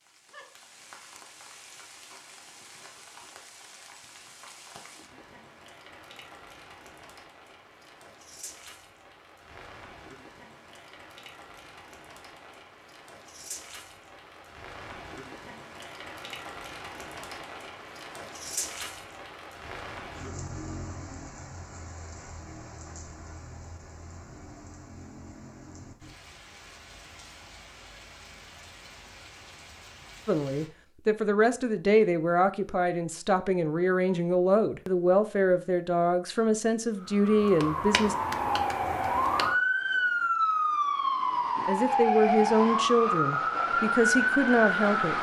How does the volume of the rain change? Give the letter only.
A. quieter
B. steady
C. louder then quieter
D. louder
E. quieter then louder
C.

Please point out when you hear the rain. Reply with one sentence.
You can hear the rain from 0.0 to 30.7 s.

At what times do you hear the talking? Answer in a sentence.
You can hear the talking from 30.2 to 38.1 s and from 41.6 to 45.1 s.